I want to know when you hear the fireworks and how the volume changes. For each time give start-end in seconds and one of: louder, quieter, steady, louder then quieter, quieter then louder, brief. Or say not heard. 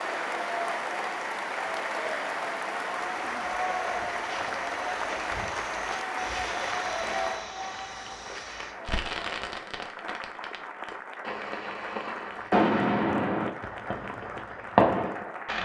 8.8-15.5 louder.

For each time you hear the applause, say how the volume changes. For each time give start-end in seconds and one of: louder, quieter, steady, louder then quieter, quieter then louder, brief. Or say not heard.
0.0-15.5 quieter.